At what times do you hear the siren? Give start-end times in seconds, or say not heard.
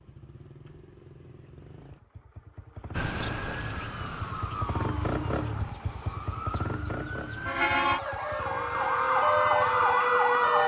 2.9-10.6.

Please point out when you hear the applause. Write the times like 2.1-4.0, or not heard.
not heard.